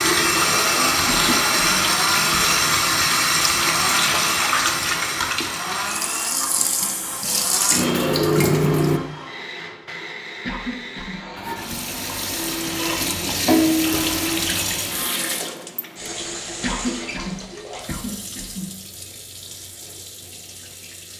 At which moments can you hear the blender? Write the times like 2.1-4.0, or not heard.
0.3-14.6.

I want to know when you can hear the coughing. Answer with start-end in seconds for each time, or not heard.
1.1-2.5, 10.4-11.9, 16.6-18.7.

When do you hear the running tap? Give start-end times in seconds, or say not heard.
0.0-9.0, 11.3-21.1.